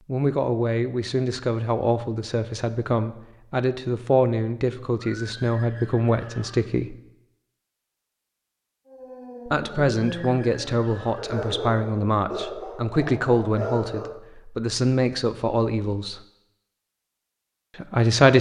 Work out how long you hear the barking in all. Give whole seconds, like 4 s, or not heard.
5 s.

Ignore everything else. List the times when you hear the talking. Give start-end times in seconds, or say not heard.
0.1-7.0, 9.4-16.2, 17.8-18.3.